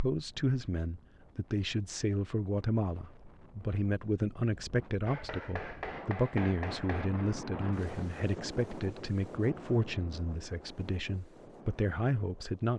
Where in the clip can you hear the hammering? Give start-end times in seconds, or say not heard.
5.0-7.1.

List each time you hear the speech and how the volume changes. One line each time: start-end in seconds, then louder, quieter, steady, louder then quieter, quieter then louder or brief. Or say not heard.
0.0-12.7 steady.